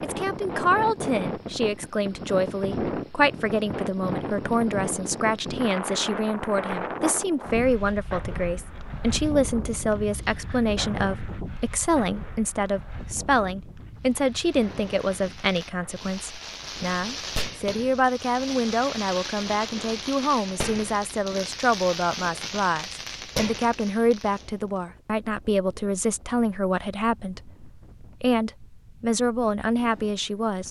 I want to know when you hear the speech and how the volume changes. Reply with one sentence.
The speech can be heard from 0.0 to 30.6 s, at a steady volume.